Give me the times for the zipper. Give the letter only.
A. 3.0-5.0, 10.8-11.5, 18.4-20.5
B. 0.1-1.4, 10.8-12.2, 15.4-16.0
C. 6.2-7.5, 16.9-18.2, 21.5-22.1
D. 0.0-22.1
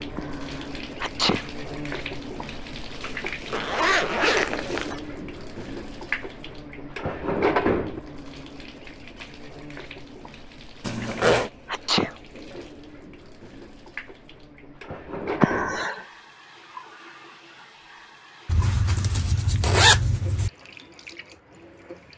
A.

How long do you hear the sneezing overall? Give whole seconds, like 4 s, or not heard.
3 s.